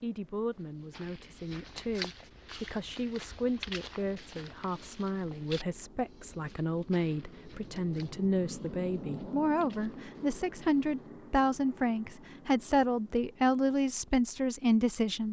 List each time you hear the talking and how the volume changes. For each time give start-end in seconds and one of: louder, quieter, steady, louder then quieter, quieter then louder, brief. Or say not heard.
0.0-15.2 louder.